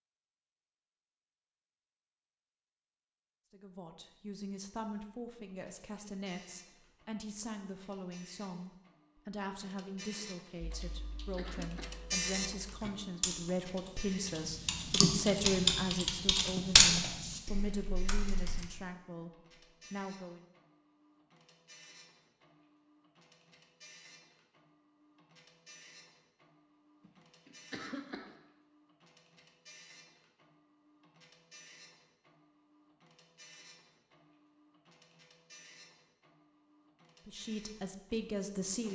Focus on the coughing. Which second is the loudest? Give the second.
28 s.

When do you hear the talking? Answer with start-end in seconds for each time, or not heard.
3.5-20.4, 37.2-38.9.